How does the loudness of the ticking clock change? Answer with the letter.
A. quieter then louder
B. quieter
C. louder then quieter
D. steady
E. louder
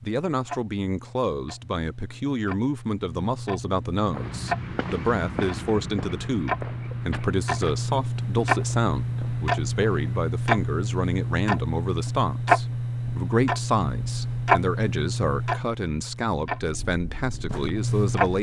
E.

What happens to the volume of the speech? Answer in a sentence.
The loudness of the speech stays about the same.